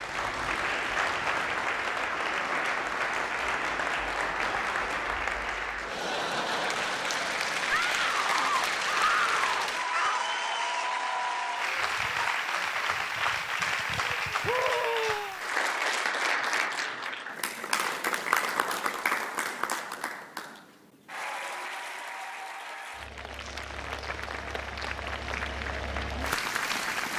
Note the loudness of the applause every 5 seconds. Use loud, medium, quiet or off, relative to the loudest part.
loud, loud, loud, loud, medium, loud.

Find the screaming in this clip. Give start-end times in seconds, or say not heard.
7.7-10.2, 14.4-15.4.